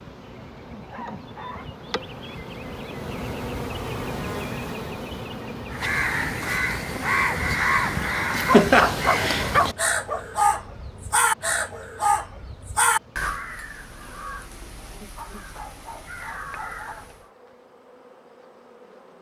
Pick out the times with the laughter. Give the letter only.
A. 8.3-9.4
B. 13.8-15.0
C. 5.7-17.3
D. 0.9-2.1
A.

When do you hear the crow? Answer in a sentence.
The crow can be heard from 5.7 to 17.3 s.